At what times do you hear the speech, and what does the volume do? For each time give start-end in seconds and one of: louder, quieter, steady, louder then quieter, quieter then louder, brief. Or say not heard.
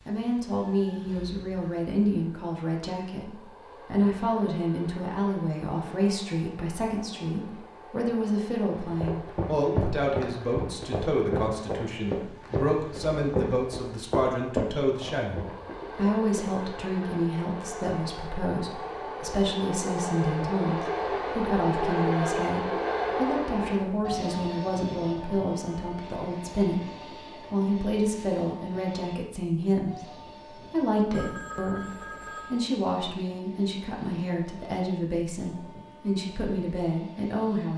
0.1-37.7 steady.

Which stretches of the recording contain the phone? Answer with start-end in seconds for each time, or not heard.
31.1-32.6.